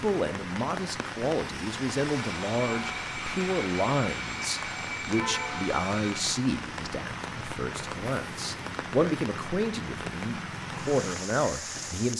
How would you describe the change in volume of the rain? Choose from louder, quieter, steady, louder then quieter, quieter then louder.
steady.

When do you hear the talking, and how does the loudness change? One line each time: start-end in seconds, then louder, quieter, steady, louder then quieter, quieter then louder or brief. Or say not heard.
0.0-12.1 steady.